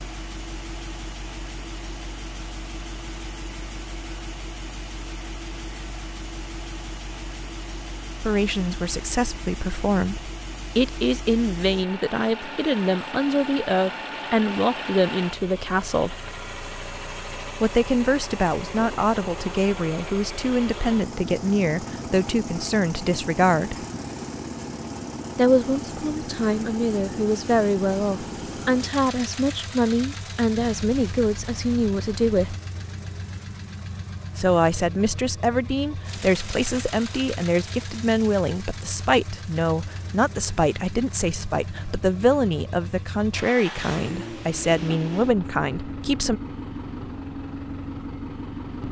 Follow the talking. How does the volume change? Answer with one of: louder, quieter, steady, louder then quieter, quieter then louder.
steady.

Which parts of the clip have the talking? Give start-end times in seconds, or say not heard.
8.2-16.2, 17.6-23.9, 25.4-32.5, 34.4-46.4.